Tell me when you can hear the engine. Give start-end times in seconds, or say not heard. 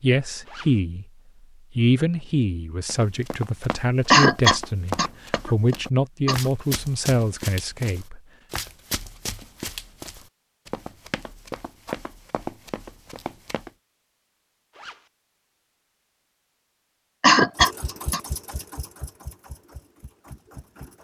17.6-20.9.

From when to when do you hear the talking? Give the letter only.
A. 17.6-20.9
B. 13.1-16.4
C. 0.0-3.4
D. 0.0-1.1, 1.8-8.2
D.